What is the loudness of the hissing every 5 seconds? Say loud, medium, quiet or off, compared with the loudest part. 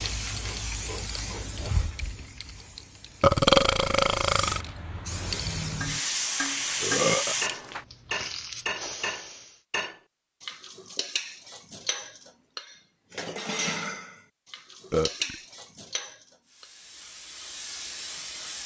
medium, loud, off, medium.